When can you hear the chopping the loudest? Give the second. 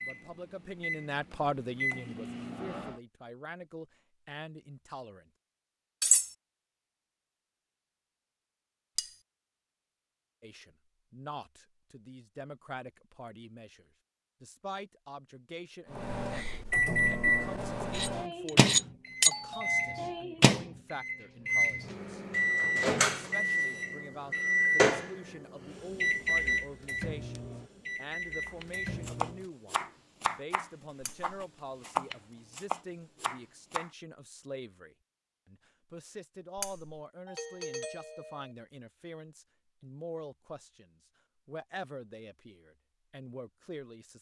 32 s.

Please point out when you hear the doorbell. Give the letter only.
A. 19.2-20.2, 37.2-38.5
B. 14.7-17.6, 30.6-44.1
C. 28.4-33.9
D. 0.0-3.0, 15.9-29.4
A.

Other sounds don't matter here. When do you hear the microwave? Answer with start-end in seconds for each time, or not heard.
0.0-3.0, 15.9-29.4.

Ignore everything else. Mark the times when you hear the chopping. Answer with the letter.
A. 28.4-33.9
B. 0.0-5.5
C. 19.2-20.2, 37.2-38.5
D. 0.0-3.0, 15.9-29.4
A.